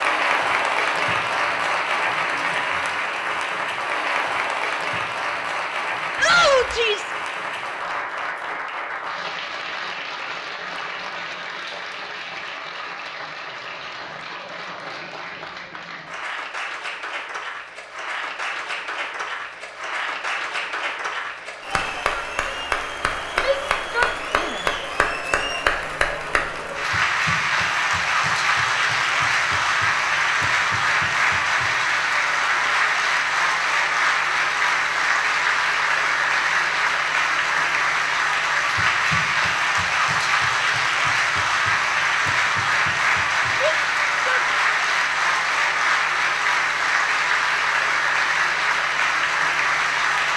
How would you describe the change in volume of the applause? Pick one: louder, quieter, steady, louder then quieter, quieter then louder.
quieter then louder.